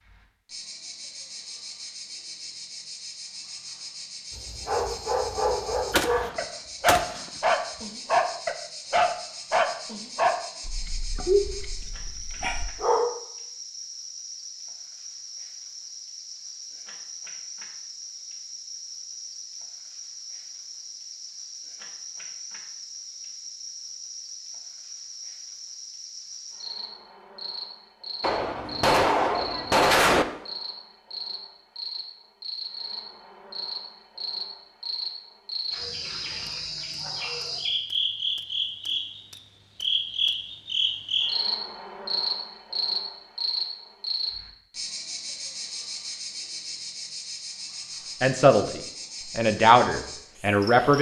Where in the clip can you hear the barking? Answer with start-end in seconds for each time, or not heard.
4.3-13.1.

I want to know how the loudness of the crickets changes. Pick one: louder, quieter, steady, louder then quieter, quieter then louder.
louder.